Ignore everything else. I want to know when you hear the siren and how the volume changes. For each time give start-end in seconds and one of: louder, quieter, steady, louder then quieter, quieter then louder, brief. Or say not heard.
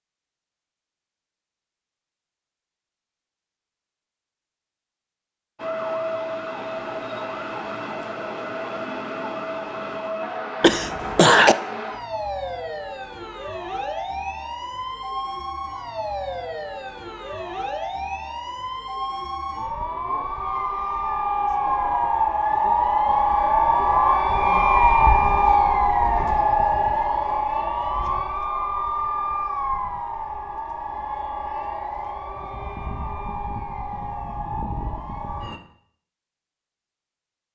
5.5-35.6 louder then quieter.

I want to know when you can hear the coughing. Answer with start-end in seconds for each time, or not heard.
10.6-11.6.